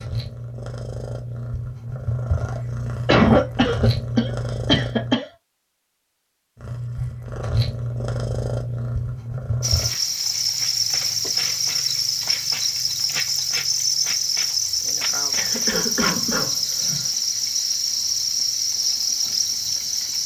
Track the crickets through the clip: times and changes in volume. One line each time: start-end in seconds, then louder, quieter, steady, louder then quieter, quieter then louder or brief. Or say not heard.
9.6-20.2 steady.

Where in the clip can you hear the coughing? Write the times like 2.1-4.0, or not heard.
3.0-5.2, 15.3-17.1.